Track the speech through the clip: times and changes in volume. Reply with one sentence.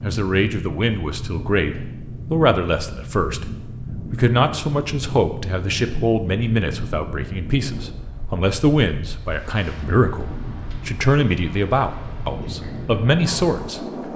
You can hear the speech from 0.0 to 13.8 s, at a steady volume.